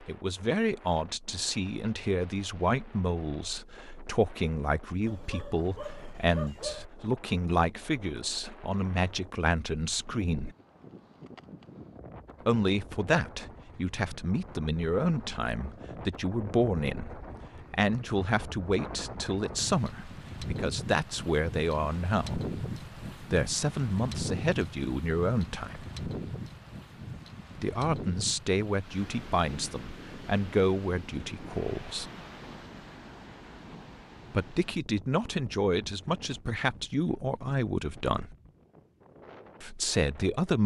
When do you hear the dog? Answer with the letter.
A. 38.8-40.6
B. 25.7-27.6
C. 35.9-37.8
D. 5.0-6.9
D.